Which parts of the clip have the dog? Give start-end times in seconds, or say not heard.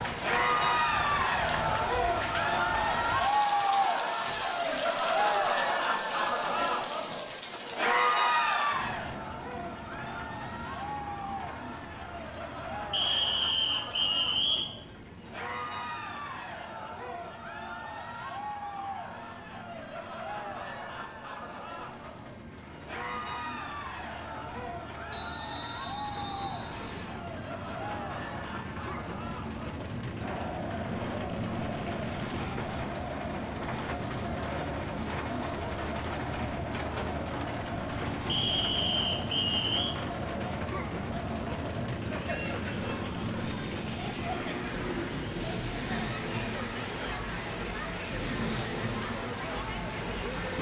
not heard.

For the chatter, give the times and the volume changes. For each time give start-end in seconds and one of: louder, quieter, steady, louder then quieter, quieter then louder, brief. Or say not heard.
0.1-50.5 quieter.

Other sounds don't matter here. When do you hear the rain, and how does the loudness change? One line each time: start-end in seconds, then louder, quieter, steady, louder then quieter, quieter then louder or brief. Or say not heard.
0.0-50.5 quieter then louder.